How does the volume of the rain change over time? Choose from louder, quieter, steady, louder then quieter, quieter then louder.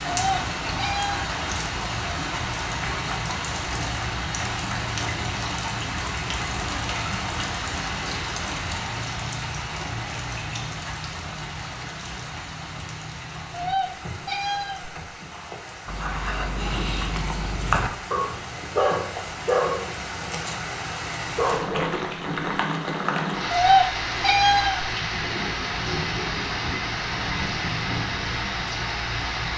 quieter then louder.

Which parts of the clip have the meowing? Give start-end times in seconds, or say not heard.
0.1-1.3, 13.5-15.0, 23.5-24.9.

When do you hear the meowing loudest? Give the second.
24 s.